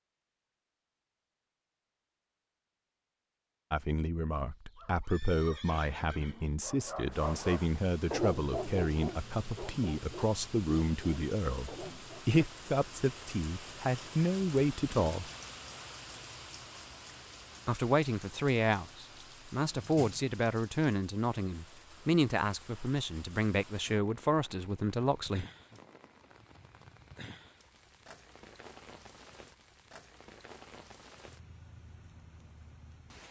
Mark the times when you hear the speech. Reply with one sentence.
The speech can be heard from 3.7 to 15.3 s and from 17.6 to 25.4 s.